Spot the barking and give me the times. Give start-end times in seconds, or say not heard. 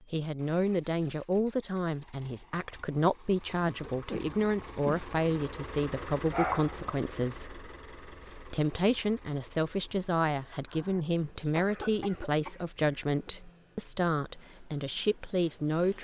6.3-6.9.